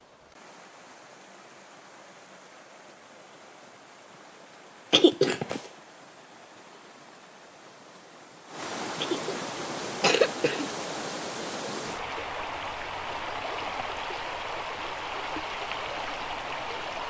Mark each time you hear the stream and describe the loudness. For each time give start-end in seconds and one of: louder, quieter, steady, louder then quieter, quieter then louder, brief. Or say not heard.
0.0-17.0 louder.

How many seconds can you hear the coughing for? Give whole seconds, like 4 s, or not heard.
2 s.